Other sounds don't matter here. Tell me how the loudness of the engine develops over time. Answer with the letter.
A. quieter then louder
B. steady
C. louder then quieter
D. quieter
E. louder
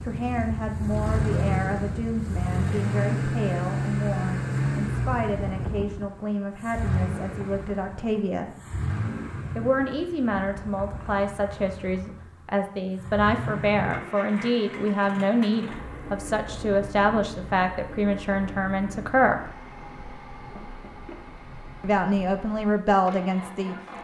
D.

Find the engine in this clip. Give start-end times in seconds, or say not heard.
0.0-23.9.